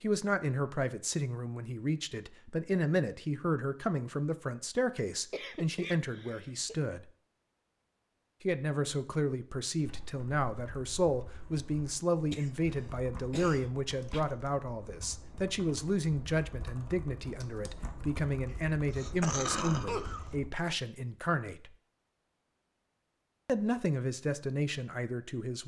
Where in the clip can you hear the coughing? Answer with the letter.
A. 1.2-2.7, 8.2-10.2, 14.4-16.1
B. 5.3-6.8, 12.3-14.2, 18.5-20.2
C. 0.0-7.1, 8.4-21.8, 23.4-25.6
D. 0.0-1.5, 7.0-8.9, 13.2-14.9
B.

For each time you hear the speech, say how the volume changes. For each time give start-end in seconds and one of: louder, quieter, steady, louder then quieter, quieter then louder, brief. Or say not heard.
0.0-7.1 steady
8.4-21.8 steady
23.4-25.6 brief.